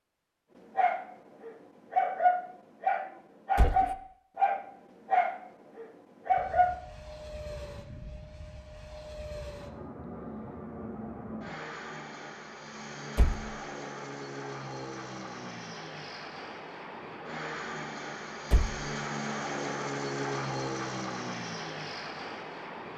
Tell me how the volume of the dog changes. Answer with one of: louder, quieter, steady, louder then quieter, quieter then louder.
steady.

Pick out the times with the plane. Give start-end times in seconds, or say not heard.
6.2-22.9.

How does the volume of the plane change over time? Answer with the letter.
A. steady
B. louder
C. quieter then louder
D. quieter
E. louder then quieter
B.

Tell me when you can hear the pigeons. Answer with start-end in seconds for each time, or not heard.
not heard.